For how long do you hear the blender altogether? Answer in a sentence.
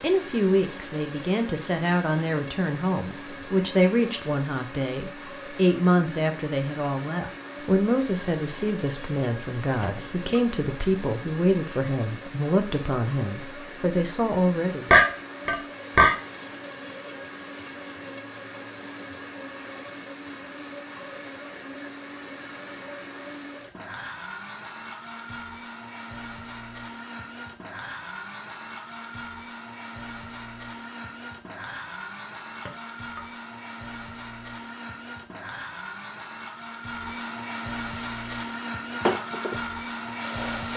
You can hear the blender for 41 seconds altogether.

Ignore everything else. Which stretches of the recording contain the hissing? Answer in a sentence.
You can hear the hissing from 37.9 to 40.7 s.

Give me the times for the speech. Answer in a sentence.
You can hear the speech from 0.0 to 14.9 s.